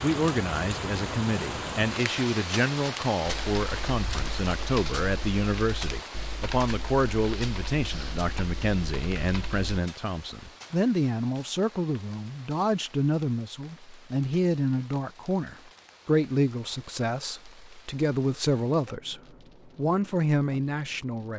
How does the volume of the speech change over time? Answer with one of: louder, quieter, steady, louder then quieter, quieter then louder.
steady.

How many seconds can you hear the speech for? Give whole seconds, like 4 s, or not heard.
21 s.